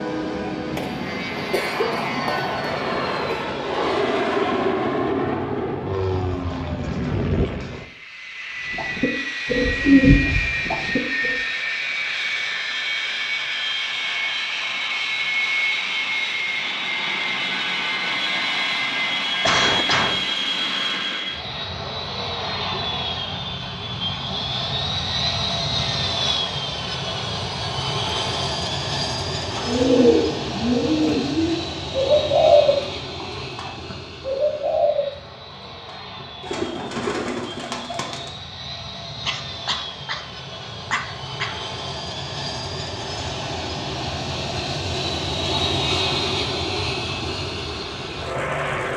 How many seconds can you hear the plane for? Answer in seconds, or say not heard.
49 s.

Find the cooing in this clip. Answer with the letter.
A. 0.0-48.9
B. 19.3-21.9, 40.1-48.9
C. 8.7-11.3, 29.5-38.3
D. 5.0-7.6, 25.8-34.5
C.